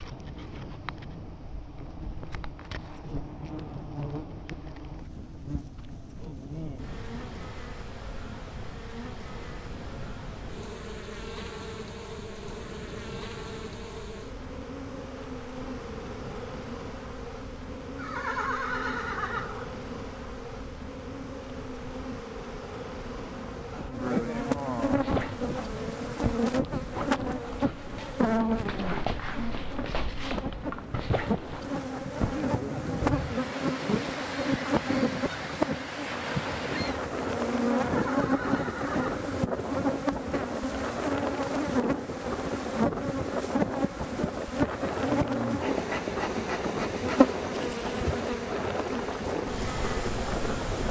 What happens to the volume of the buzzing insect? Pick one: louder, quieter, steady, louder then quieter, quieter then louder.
louder.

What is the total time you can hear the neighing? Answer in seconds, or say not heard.
3 s.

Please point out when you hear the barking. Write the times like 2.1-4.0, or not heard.
24.9-32.5.